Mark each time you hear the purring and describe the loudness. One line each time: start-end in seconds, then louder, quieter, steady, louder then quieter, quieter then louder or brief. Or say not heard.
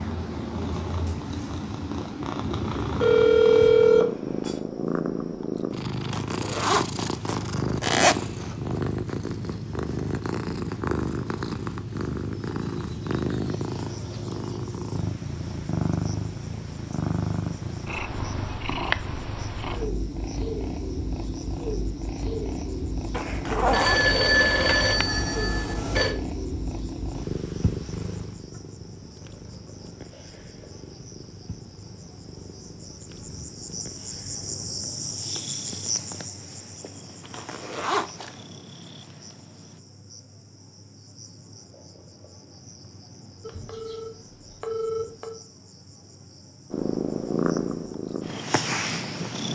0.0-39.8 quieter
46.7-49.4 brief.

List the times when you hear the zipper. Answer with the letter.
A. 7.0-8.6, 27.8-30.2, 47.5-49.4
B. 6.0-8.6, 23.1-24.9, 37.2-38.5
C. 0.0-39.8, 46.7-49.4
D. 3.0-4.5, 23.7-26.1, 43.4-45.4
B.